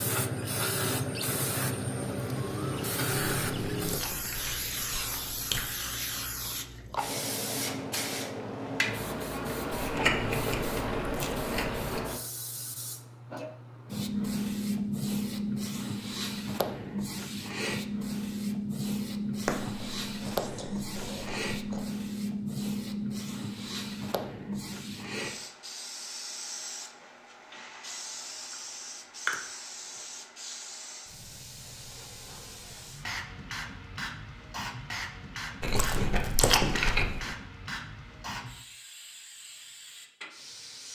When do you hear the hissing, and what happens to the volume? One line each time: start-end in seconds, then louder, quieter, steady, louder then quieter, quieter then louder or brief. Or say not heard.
0.0-40.8 quieter.